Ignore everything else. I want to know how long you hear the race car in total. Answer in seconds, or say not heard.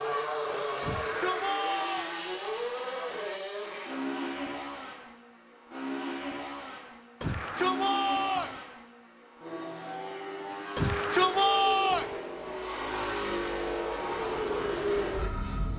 16 s.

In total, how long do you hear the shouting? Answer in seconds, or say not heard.
4 s.